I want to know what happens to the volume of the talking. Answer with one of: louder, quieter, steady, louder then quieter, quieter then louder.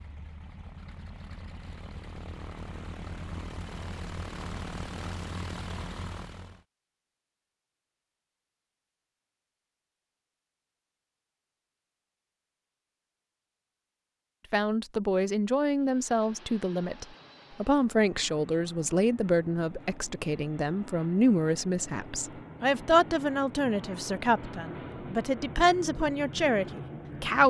steady.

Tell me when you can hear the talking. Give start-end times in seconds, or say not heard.
14.5-27.4.